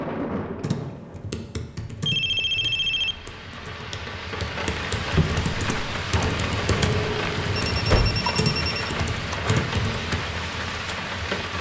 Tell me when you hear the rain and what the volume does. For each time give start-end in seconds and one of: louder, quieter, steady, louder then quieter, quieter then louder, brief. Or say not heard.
0.0-11.5 louder.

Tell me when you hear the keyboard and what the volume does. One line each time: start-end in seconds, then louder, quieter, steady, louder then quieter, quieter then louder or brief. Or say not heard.
0.6-10.2 quieter then louder.